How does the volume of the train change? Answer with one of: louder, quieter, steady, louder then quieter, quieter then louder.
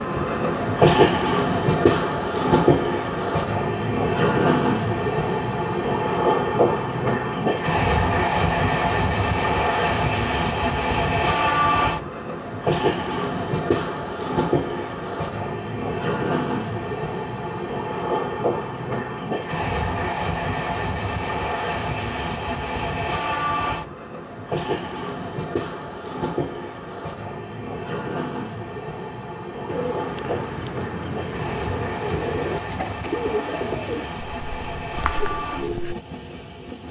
quieter.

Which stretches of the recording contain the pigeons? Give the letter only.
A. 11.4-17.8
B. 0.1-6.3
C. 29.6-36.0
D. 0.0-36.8
C.